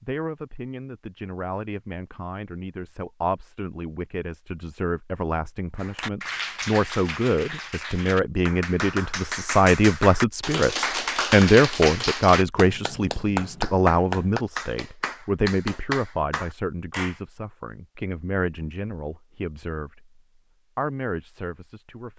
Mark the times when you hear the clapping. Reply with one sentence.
The clapping can be heard from 5.8 to 17.2 s.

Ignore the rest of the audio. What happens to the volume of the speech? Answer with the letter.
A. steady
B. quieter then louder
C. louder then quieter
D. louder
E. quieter
C.